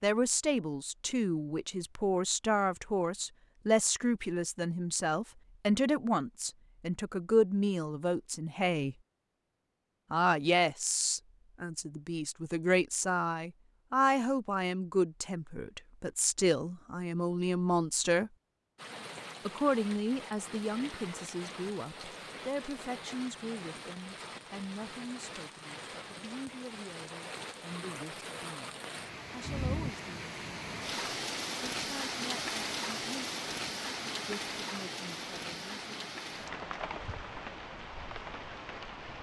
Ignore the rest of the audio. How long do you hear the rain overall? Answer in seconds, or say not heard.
20 s.